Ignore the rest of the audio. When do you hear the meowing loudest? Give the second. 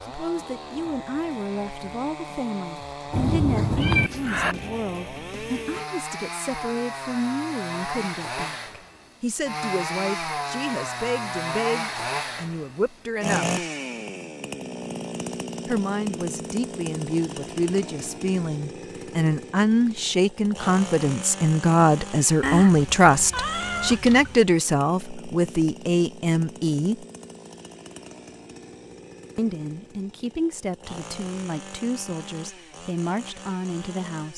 4 s.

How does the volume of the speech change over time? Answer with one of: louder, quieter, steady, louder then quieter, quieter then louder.
louder then quieter.